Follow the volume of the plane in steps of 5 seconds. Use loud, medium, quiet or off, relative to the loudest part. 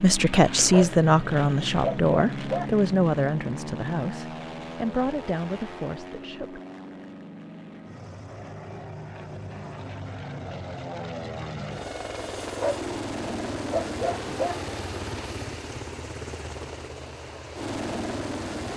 loud, medium, loud, loud.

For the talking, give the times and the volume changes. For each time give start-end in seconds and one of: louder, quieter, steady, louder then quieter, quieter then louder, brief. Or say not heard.
0.0-6.6 quieter.